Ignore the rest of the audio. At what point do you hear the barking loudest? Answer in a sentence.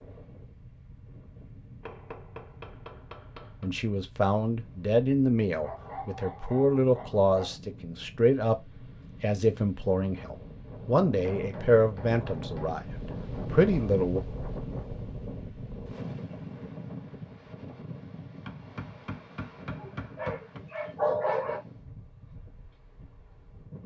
The loudest moment of the barking is at 21 seconds.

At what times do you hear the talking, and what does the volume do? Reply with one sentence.
The talking can be heard from 3.6 to 14.2 s, at a steady volume.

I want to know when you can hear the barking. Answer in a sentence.
You can hear the barking from 5.6 to 7.5 s and from 19.7 to 21.6 s.